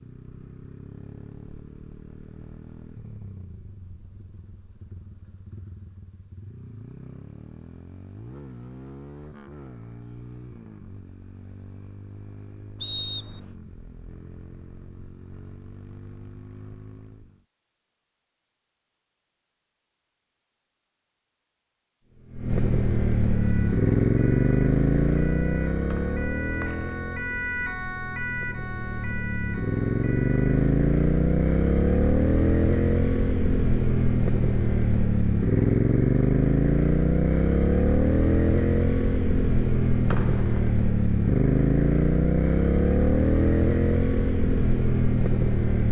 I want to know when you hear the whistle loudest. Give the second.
13 s.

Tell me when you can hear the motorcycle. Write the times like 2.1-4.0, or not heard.
0.0-17.4, 22.0-45.8.